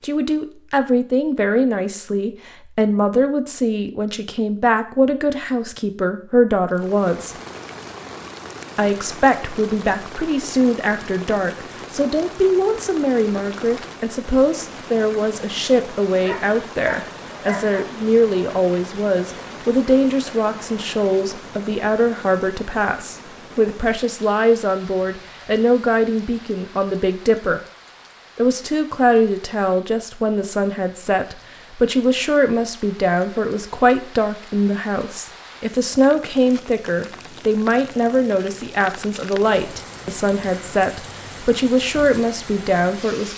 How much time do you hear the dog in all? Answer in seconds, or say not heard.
2 s.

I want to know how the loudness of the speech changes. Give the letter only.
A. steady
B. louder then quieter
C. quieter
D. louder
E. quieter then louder
A.